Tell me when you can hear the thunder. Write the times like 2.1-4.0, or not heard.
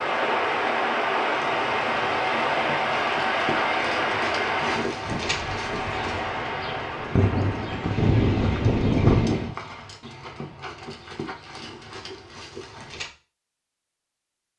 5.0-9.6.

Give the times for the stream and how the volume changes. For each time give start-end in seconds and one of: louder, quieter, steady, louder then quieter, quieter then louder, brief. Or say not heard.
0.0-9.6 quieter.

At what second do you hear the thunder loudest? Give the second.
9 s.